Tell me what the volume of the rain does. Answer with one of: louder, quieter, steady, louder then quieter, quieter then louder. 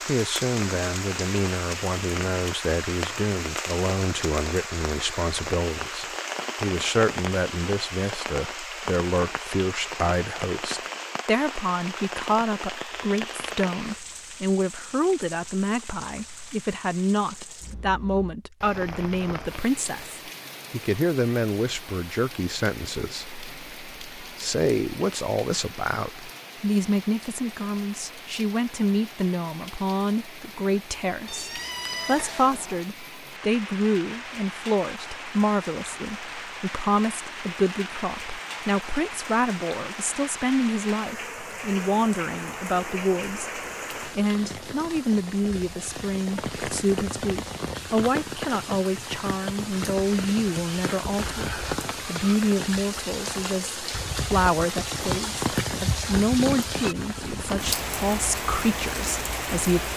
quieter then louder.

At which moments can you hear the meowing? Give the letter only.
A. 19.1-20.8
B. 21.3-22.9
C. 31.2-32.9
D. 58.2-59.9
C.